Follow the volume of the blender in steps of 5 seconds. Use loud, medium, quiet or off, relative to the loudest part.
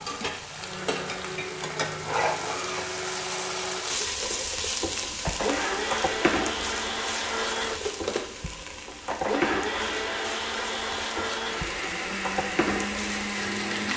medium, loud, loud.